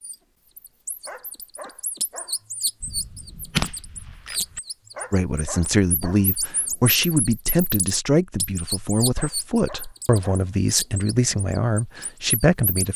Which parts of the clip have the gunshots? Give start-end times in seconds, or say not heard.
2.8-4.6.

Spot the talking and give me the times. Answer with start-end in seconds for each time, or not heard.
5.1-12.9.